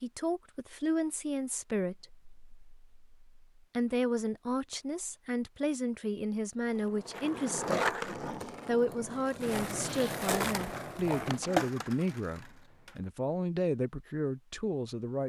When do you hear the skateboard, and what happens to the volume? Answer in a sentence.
You can hear the skateboard from 6.7 to 12.9 s, getting quieter then louder.